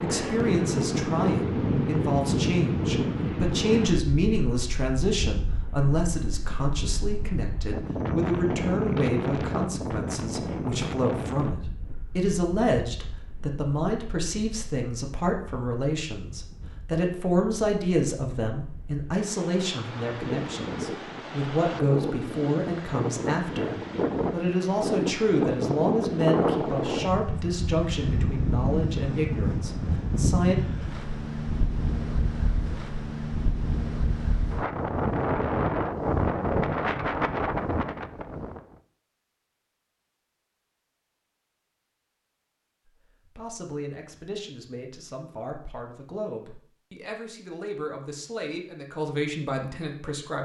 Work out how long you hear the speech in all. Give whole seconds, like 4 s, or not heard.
38 s.